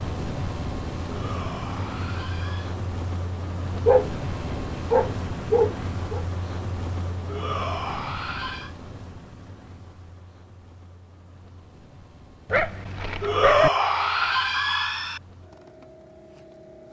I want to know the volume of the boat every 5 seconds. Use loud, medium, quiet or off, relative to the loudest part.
loud, loud, quiet, quiet.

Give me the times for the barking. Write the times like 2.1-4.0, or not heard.
3.9-6.2, 12.4-13.7.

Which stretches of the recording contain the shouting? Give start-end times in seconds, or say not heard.
1.1-2.8, 7.2-8.8, 13.2-15.2.